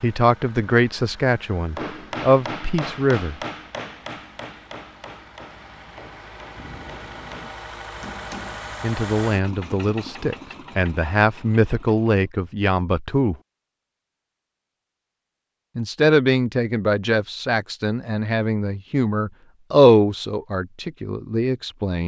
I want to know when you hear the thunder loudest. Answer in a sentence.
The loudest moment of the thunder is at 7 seconds.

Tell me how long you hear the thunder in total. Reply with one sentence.
You can hear the thunder for 2 seconds altogether.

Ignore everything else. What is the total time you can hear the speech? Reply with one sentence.
The speech can be heard for 14 seconds in total.